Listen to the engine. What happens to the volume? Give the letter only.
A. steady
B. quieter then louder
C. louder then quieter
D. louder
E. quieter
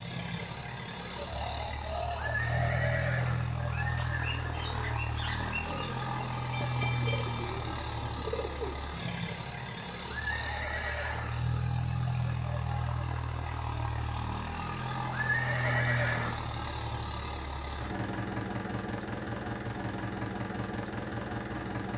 A.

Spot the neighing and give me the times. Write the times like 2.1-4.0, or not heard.
2.1-5.0, 10.2-11.4, 15.1-16.4.